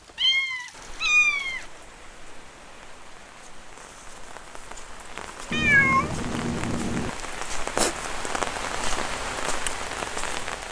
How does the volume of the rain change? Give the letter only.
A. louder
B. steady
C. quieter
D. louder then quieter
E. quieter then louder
A.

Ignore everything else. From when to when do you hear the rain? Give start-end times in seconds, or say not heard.
0.0-10.6.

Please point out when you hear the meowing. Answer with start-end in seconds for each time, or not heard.
0.1-1.6, 5.5-7.1.